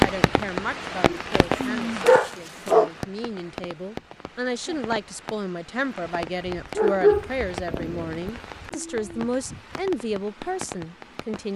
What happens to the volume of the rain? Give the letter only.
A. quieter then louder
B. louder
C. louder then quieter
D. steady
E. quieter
E.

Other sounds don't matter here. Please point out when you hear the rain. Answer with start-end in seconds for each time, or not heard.
0.0-11.5.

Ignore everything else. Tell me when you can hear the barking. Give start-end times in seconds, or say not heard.
1.1-2.9, 6.8-8.3.